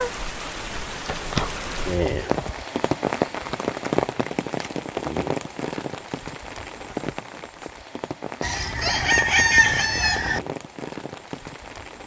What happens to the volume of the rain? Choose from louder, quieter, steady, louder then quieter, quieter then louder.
quieter.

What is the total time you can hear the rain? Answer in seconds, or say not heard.
12 s.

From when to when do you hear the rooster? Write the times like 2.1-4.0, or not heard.
8.4-10.4.